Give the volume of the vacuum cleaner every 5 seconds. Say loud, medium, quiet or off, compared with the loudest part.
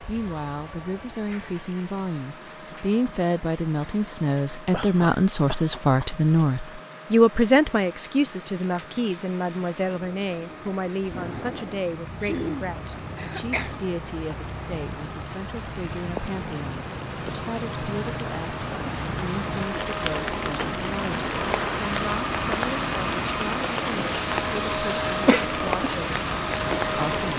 quiet, quiet, quiet, medium, loud, loud.